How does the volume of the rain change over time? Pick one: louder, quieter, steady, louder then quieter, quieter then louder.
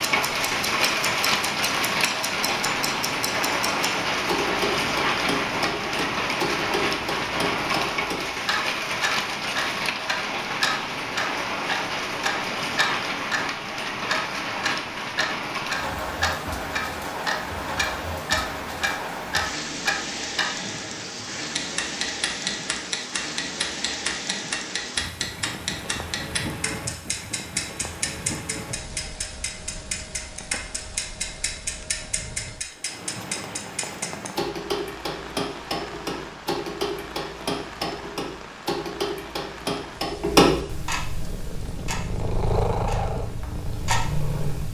quieter.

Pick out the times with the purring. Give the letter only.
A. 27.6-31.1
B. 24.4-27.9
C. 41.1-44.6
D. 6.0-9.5
C.